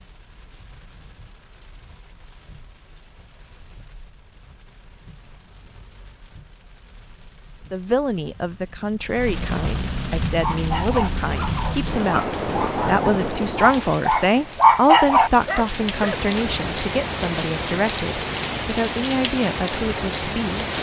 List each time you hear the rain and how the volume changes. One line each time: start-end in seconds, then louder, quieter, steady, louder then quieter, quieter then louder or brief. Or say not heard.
0.0-20.7 louder.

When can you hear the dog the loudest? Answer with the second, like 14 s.
15 s.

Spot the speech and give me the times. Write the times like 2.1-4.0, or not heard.
7.7-20.6.